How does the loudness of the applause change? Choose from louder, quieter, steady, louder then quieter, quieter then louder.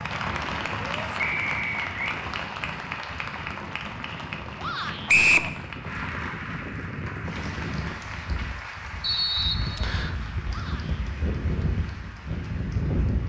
quieter.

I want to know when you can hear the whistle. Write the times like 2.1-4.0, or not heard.
1.2-2.2, 5.0-5.5, 9.0-10.2.